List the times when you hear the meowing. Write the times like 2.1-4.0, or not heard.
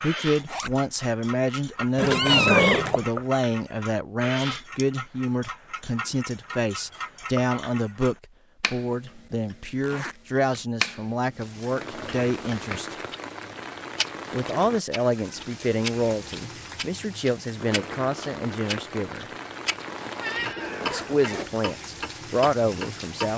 1.9-3.0, 20.0-21.4.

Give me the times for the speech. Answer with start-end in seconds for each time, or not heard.
0.0-12.9, 14.3-19.2, 20.9-23.3.